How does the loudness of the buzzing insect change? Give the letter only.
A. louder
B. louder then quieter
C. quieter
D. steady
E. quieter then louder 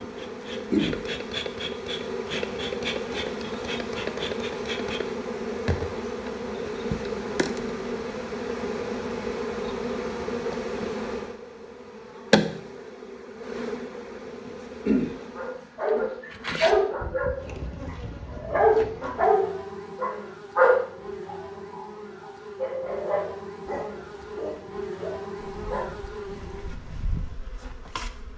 C.